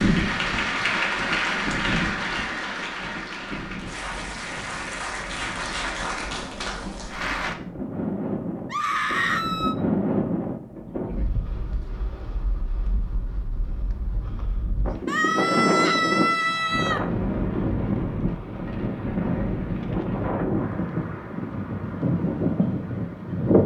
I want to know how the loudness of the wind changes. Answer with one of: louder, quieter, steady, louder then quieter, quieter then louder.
louder.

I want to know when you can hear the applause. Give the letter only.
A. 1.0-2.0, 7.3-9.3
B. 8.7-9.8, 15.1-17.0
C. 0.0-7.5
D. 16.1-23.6
C.